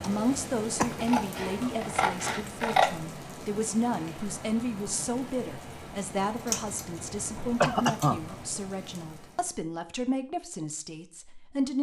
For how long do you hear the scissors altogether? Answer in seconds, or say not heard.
4 s.